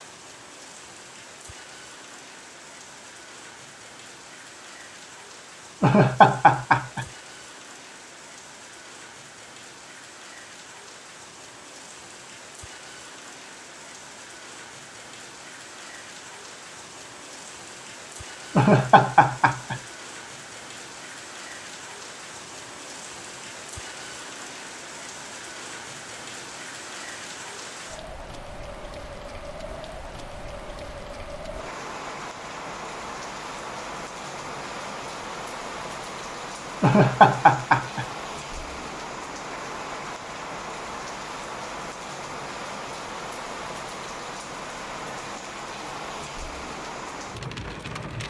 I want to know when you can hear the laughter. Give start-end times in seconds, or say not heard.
5.8-7.0, 18.6-19.8, 36.8-38.0.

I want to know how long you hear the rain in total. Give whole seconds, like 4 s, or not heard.
48 s.